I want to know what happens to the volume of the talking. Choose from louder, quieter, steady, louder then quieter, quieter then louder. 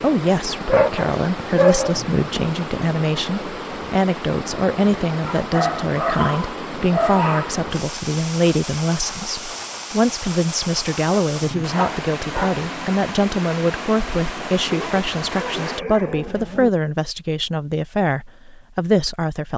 steady.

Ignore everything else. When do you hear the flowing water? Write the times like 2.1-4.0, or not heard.
0.0-15.8.